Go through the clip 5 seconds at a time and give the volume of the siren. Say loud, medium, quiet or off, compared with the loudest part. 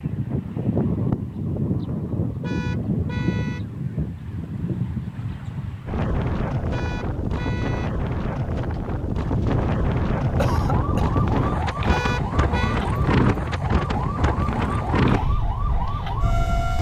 off, off, loud, loud.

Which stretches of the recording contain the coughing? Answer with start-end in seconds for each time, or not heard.
10.3-11.2.